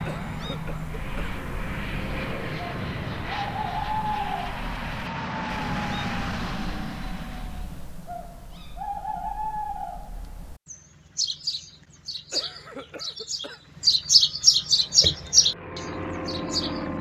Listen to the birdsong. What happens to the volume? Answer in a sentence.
The loudness of the birdsong goes up.